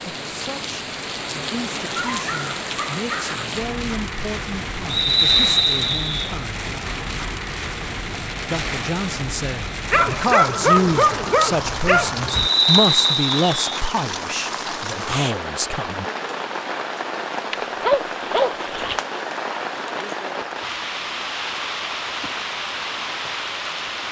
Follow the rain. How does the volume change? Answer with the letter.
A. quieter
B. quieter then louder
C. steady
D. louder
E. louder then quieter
C.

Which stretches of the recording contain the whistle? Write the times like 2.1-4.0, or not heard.
4.9-6.2, 12.3-13.6.